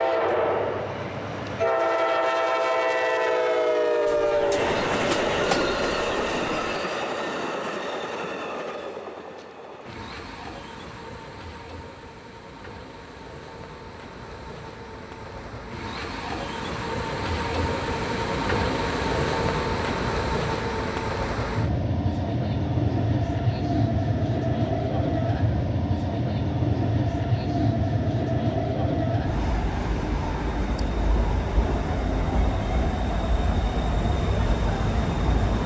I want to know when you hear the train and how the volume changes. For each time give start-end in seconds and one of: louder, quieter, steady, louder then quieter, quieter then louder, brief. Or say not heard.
0.0-35.6 quieter then louder.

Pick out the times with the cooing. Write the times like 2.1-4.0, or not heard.
4.0-6.8.